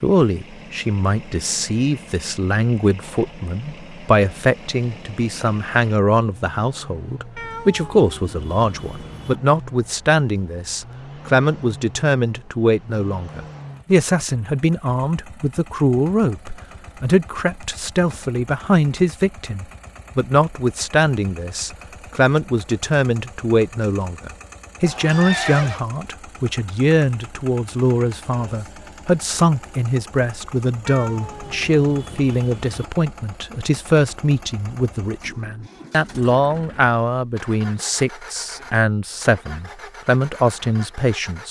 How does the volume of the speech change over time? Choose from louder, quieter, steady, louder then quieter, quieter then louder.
steady.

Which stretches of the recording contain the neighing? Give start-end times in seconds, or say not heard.
24.8-25.8.